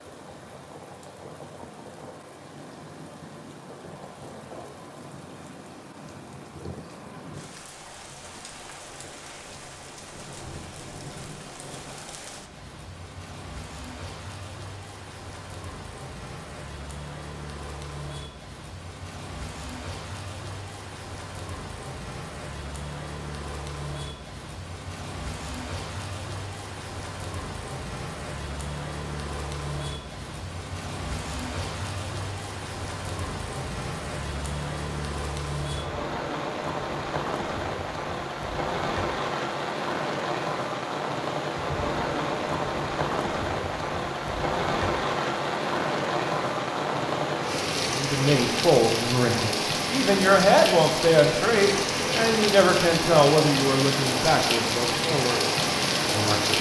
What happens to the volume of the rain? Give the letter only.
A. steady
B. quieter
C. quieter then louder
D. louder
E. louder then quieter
D.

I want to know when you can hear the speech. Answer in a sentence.
The speech can be heard from 47.9 to 56.5 s.